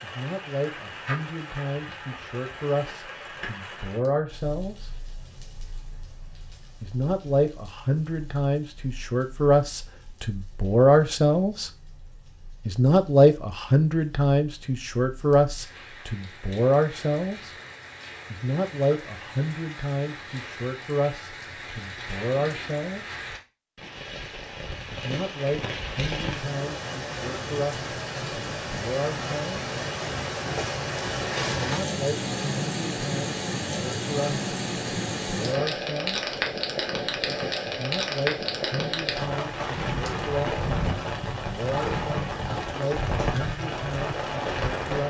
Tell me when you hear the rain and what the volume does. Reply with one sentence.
The rain can be heard from 0.0 to 45.0 s, getting quieter then louder.